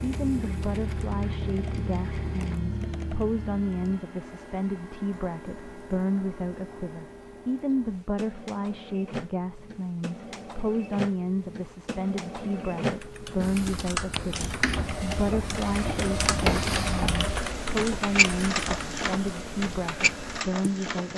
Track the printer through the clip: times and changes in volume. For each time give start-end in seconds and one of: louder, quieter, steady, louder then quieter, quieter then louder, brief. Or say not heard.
0.0-21.1 louder.